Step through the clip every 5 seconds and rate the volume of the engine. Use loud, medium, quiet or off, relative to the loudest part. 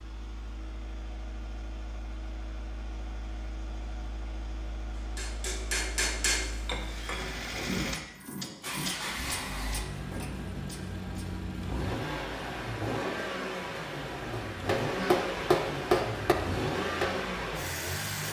quiet, medium, loud, loud.